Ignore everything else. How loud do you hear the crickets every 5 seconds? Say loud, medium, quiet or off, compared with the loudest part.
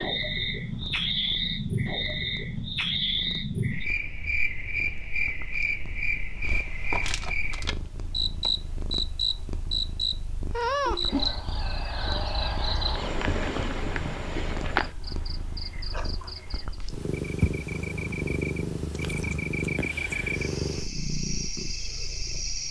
loud, loud, loud, medium, medium.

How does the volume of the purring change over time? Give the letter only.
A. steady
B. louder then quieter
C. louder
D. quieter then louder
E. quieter
C.